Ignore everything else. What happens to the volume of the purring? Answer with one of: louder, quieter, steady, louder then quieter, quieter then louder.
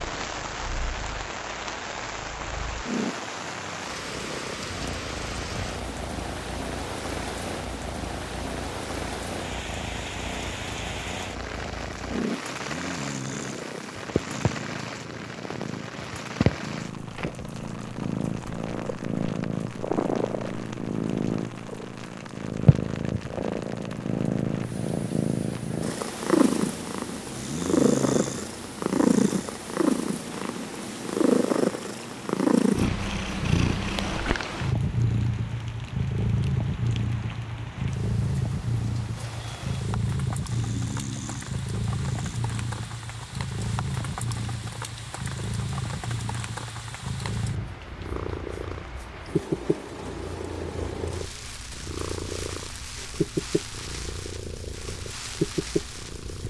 louder then quieter.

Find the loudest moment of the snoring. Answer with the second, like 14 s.
28 s.